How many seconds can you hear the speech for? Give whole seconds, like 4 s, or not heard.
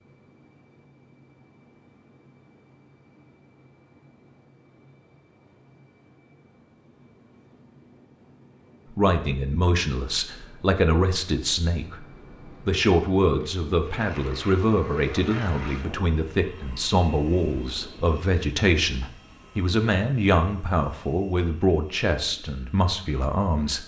14 s.